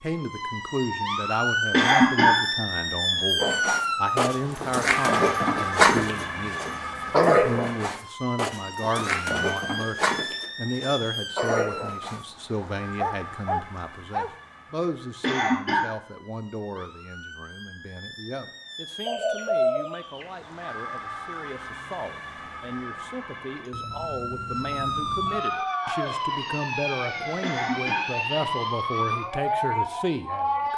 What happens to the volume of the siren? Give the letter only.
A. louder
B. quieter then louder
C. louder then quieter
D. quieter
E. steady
B.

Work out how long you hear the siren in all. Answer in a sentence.
You can hear the siren for 31 seconds altogether.